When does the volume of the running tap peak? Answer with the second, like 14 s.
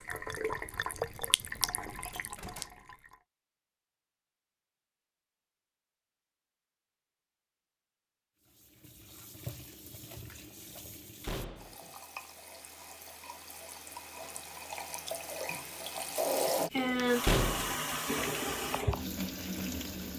17 s.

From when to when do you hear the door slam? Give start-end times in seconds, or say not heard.
2.0-2.7, 11.2-11.8, 17.2-17.8.